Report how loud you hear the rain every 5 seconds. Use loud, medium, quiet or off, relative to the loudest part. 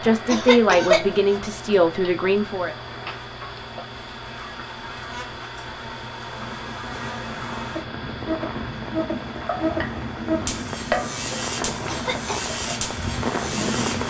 off, medium, loud.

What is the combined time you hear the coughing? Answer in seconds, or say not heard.
2 s.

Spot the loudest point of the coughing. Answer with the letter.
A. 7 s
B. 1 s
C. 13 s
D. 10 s
B.